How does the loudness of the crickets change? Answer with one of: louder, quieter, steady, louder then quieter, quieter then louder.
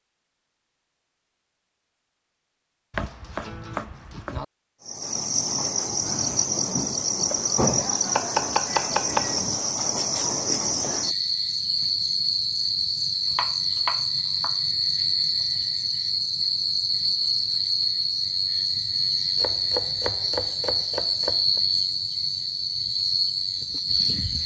steady.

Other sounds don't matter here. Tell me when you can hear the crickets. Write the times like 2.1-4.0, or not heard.
4.8-24.4.